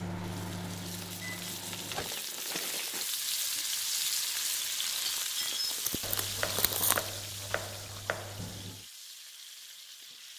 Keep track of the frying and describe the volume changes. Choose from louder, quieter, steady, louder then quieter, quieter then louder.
louder then quieter.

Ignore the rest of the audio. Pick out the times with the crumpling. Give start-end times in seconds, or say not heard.
0.9-3.1, 5.4-7.1.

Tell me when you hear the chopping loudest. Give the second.
7 s.